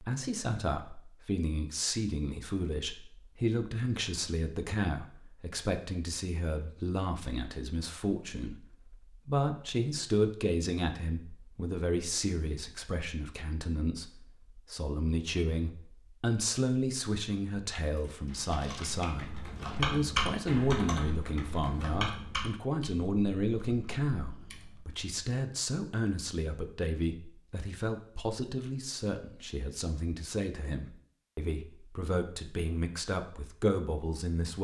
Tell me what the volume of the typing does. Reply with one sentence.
The loudness of the typing goes up, then down.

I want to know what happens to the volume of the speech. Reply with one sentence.
The loudness of the speech stays about the same.